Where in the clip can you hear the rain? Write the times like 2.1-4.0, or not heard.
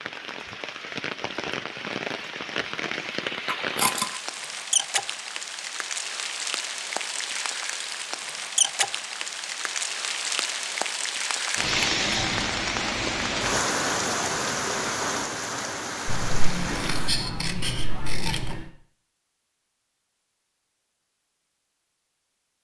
0.0-17.1.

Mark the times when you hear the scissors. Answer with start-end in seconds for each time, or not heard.
3.5-4.0, 11.6-13.6, 16.1-18.7.